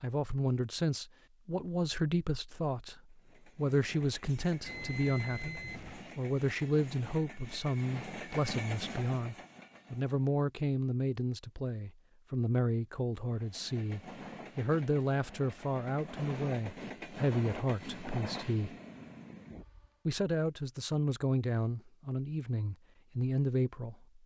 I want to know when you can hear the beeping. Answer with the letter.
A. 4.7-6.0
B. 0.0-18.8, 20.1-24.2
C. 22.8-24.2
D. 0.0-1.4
A.